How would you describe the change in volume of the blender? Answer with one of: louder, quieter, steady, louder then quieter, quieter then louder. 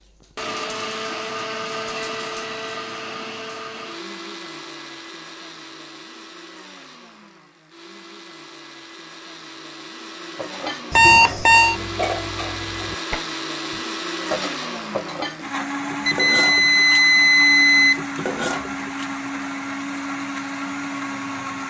quieter then louder.